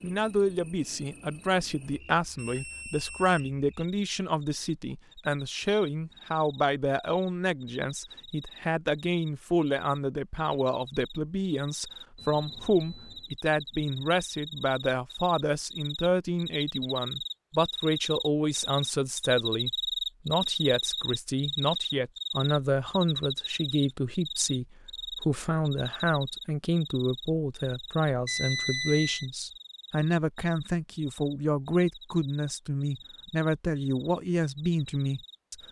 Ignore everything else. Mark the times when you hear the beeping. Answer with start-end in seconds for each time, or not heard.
1.9-3.4, 12.2-13.3, 28.2-29.3.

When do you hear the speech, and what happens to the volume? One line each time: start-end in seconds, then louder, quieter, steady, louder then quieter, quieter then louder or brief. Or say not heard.
0.0-35.5 steady.